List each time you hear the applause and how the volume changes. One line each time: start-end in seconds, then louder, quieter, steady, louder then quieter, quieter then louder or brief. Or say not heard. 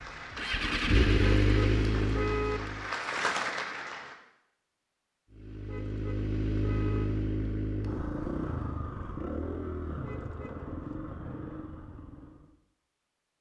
0.0-4.2 louder.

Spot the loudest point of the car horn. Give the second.
2 s.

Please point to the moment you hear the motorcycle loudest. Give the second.
1 s.